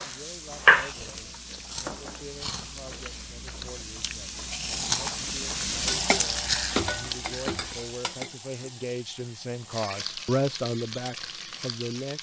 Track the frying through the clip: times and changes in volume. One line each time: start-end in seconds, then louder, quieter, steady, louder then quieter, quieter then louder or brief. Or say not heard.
0.0-12.1 louder then quieter.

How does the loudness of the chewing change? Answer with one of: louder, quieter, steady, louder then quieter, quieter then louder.
louder.